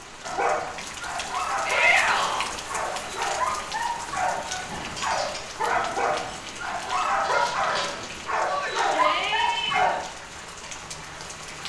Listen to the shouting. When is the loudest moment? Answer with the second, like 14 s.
2 s.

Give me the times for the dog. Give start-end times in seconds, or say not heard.
0.2-9.9.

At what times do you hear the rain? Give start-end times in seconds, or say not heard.
0.0-11.6.